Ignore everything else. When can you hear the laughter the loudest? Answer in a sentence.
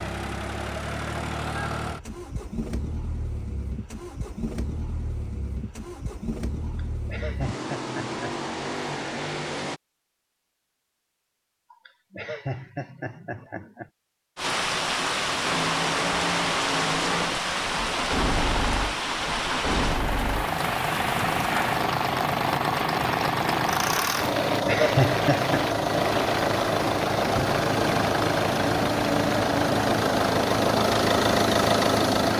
The loudest moment of the laughter is at 25 seconds.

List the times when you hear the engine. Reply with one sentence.
The engine can be heard from 0.0 to 9.8 s and from 15.4 to 32.3 s.